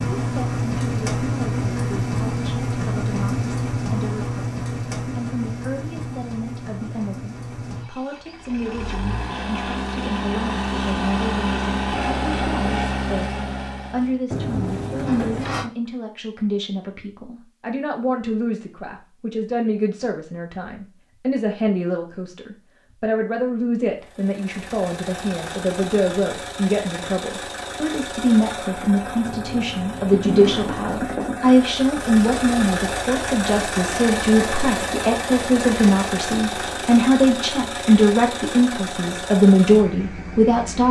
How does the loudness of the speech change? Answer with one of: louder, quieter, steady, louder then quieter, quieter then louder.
louder.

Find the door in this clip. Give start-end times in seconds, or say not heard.
14.3-15.7, 29.2-31.2.